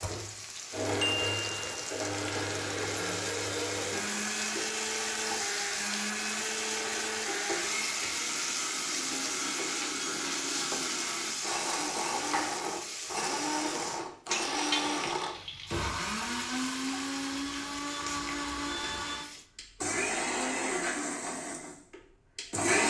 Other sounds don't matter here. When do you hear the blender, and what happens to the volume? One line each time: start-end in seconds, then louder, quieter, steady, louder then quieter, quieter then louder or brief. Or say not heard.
0.0-22.8 steady.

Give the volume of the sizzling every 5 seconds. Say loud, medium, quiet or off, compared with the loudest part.
loud, loud, loud, medium, off.